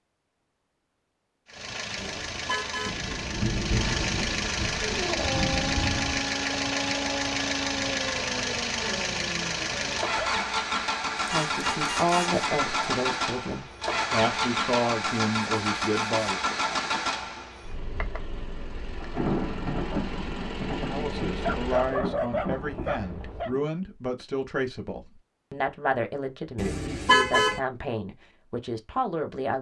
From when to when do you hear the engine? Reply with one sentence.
You can hear the engine from 1.4 to 22.0 s.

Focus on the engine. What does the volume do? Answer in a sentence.
The volume of the engine goes down.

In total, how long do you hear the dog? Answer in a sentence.
You can hear the dog for 8 seconds altogether.